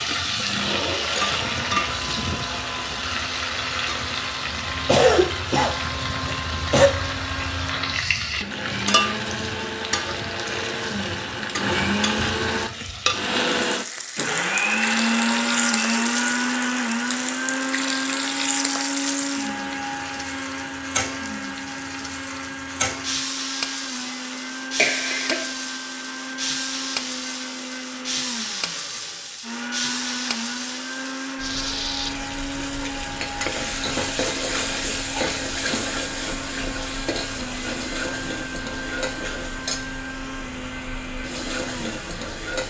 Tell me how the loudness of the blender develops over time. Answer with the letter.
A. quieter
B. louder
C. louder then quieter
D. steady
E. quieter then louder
C.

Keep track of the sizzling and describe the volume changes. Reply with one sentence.
The volume of the sizzling stays about the same.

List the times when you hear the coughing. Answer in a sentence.
The coughing can be heard from 4.8 to 6.9 s and from 24.8 to 25.4 s.